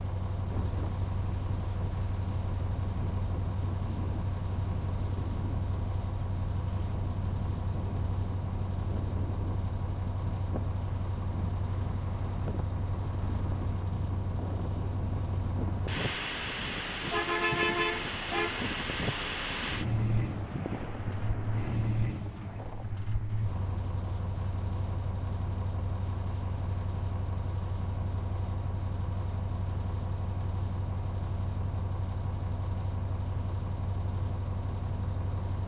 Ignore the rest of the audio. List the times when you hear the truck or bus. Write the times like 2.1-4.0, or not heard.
0.0-35.6.